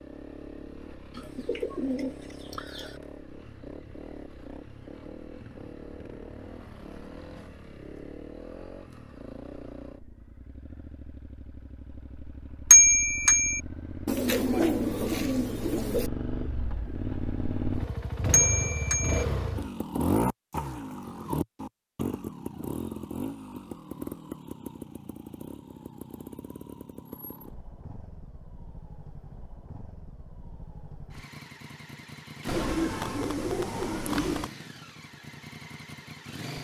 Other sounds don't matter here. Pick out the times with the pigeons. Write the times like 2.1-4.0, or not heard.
1.1-3.0, 14.1-16.1, 32.5-34.5.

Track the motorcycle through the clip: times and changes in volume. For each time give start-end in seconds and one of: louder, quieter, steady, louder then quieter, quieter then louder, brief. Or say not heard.
0.0-36.5 louder then quieter.